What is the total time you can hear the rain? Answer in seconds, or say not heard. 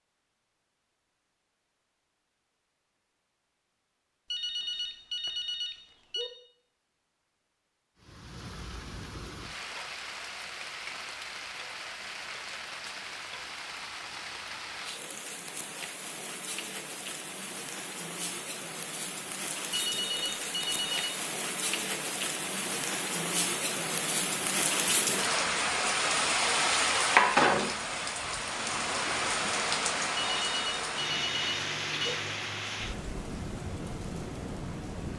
27 s.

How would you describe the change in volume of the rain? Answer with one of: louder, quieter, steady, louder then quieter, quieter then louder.
louder then quieter.